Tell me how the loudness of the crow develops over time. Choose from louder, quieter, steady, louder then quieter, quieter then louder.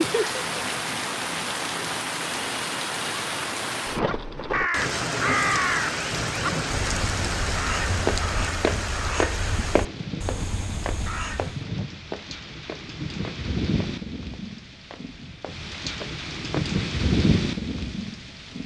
quieter.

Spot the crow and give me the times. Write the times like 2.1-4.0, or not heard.
4.0-11.6.